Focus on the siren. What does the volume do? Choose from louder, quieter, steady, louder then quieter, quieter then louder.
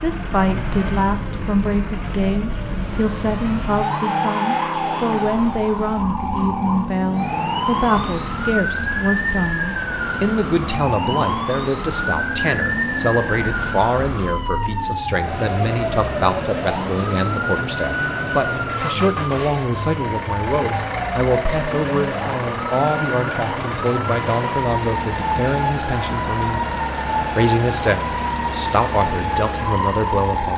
steady.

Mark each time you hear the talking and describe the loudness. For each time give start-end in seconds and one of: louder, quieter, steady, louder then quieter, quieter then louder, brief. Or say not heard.
0.0-30.5 steady.